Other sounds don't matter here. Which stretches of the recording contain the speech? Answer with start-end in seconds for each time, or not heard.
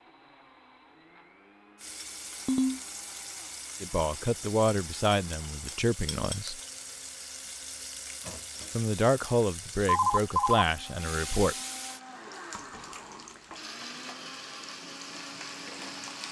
3.8-6.6, 8.8-11.6.